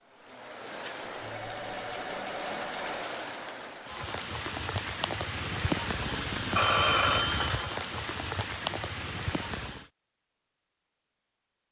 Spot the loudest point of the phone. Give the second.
7 s.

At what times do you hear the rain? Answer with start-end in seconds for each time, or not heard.
0.0-9.9.